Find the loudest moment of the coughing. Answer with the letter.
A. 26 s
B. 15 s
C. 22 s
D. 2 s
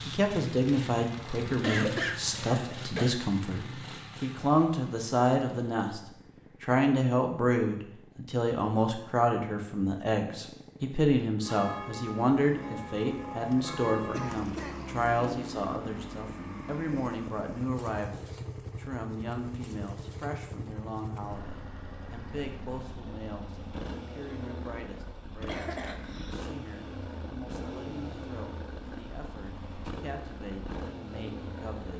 D.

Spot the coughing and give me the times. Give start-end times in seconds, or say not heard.
1.6-3.1, 14.1-14.8, 25.4-26.5.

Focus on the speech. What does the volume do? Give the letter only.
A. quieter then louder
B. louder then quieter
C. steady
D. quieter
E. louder
D.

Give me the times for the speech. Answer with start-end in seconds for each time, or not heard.
0.1-6.0, 6.6-31.9.